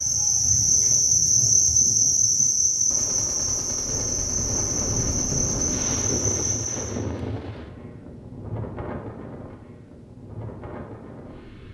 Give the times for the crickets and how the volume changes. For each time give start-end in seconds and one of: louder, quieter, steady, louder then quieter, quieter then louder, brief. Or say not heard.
0.0-7.0 quieter.